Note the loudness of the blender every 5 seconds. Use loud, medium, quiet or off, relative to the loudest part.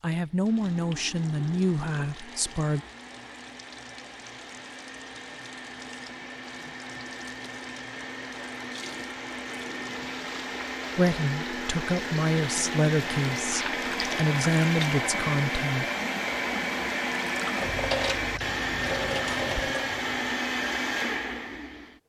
quiet, medium, loud, loud, loud.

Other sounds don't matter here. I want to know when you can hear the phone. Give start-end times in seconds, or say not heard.
not heard.